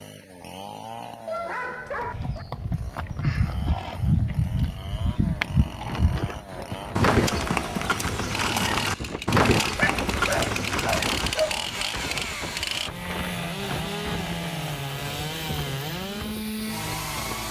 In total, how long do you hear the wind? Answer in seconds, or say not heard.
12 s.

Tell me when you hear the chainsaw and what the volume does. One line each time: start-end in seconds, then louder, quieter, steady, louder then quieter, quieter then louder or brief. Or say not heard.
0.0-17.4 louder.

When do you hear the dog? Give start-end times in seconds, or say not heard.
1.2-2.5, 9.8-11.6.